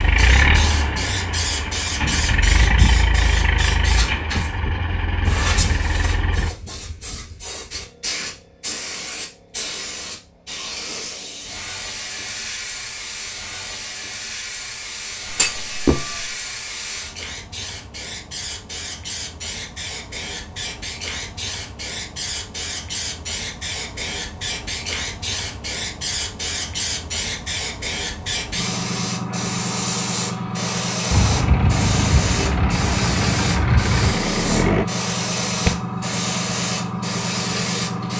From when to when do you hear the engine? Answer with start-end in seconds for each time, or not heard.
0.0-6.5, 31.1-34.9.